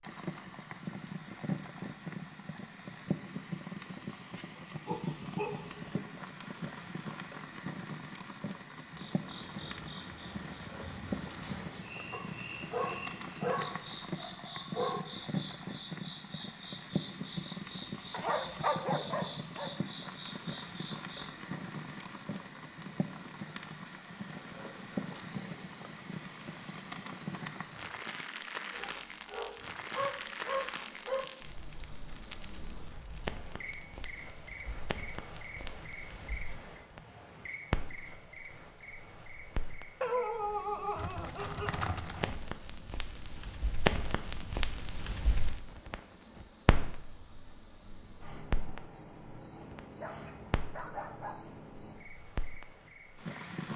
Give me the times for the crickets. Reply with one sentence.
The crickets can be heard from 8.9 to 53.7 s.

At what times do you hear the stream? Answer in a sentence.
You can't hear the stream here.